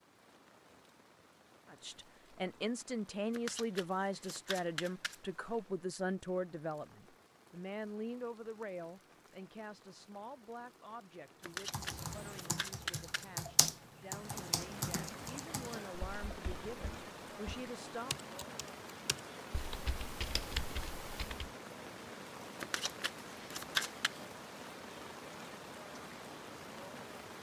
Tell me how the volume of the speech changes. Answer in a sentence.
The volume of the speech goes down, then up.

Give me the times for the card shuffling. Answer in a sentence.
The card shuffling can be heard from 3.3 to 5.2 s, from 11.4 to 13.2 s and from 22.6 to 24.1 s.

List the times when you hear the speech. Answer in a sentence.
The speech can be heard from 1.6 to 18.1 s.